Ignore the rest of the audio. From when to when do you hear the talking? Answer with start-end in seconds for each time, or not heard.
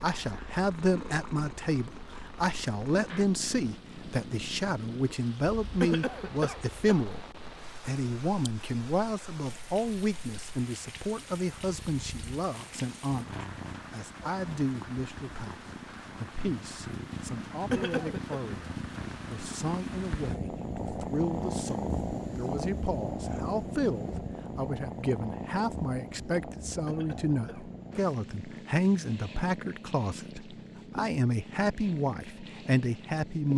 0.0-33.5.